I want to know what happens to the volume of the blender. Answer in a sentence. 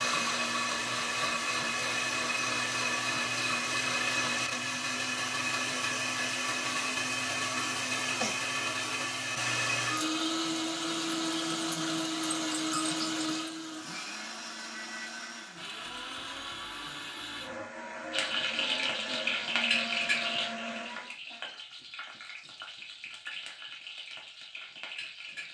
The loudness of the blender goes down.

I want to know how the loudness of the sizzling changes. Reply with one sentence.
The loudness of the sizzling goes down.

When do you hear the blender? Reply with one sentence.
The blender can be heard from 0.0 to 21.1 s.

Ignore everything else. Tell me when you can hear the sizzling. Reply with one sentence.
You can hear the sizzling from 18.1 to 25.4 s.